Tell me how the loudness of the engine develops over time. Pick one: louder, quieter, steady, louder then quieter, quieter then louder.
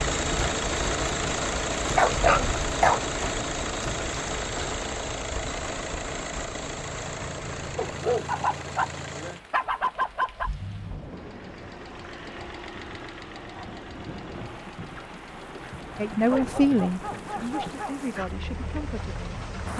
quieter.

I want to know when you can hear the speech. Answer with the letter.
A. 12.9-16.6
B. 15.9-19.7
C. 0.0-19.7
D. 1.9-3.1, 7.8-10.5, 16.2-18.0
B.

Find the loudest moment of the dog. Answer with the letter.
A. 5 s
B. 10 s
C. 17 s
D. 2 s
D.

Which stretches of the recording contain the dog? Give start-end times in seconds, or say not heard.
1.9-3.1, 7.8-10.5, 16.2-18.0.